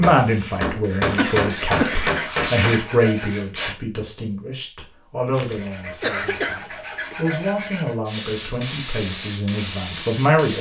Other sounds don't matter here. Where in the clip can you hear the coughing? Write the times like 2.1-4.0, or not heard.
1.1-2.1, 5.5-7.2.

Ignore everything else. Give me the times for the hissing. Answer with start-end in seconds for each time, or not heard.
0.0-3.8, 8.1-10.5.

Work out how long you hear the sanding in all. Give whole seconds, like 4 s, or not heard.
5 s.